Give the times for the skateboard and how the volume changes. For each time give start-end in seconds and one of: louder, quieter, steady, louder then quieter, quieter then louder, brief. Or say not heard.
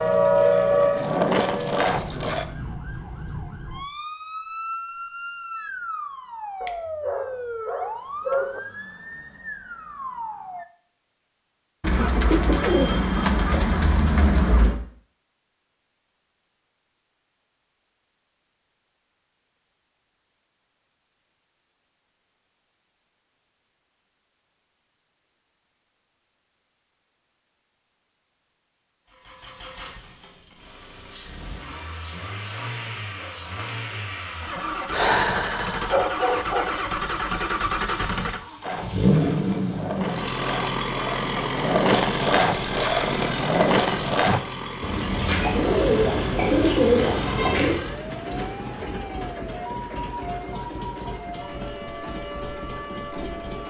0.0-2.5 brief
38.6-44.4 louder.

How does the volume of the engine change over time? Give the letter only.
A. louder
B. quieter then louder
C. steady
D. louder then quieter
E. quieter
D.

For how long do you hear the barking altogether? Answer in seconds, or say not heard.
4 s.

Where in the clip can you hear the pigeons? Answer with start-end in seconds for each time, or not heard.
11.8-14.8, 44.8-47.8.